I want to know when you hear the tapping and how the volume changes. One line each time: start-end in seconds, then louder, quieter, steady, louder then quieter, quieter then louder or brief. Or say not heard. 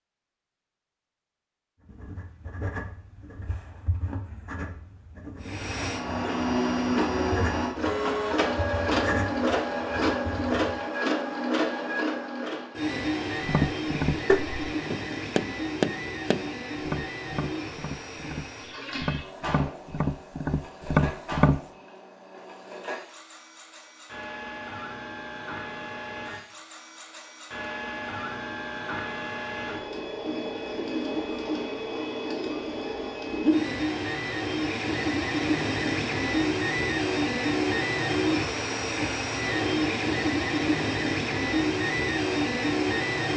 13.4-21.6 quieter then louder.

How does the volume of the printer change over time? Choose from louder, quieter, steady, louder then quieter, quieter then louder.
quieter then louder.